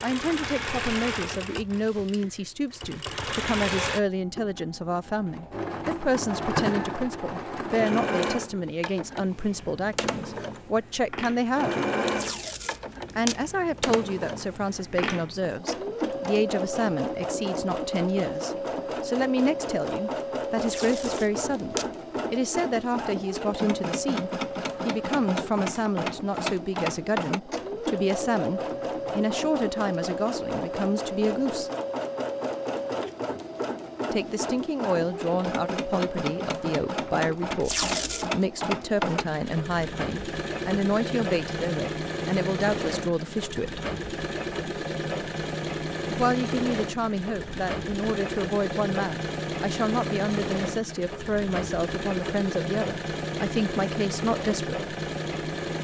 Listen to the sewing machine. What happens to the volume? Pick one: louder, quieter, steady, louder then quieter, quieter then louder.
steady.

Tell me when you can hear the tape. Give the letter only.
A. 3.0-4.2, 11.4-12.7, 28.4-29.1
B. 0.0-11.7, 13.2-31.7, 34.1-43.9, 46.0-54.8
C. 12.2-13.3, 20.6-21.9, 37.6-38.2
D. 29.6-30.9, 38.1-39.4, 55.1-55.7
C.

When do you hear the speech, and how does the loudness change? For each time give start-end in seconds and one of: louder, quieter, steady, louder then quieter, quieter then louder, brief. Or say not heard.
0.0-11.7 steady
13.2-31.7 steady
34.1-43.9 steady
46.0-54.8 steady.